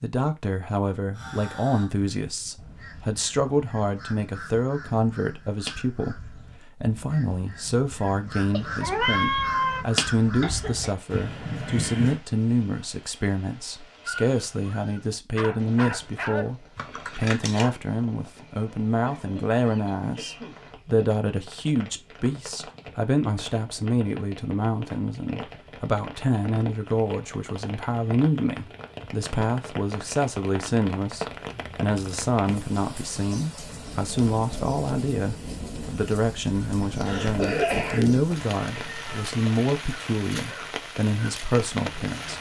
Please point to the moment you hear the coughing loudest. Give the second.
38 s.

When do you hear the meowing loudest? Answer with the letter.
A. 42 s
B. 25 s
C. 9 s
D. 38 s
C.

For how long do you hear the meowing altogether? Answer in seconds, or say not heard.
2 s.